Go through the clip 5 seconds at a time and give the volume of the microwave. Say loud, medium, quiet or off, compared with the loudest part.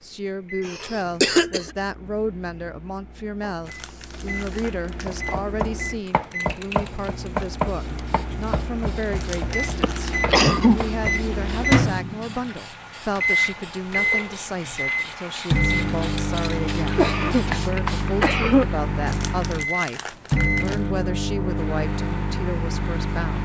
quiet, medium, loud, loud, loud.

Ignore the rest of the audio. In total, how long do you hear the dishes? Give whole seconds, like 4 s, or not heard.
not heard.